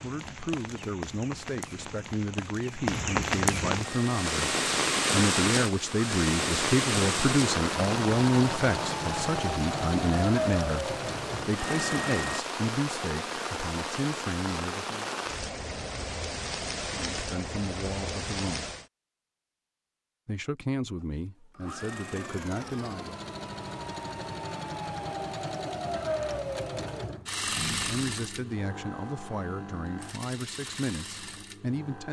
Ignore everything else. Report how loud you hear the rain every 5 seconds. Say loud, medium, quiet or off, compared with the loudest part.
loud, loud, medium, medium, off, off, off.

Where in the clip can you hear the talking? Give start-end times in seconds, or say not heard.
0.0-15.1, 16.9-18.6, 20.2-23.1, 27.9-32.0.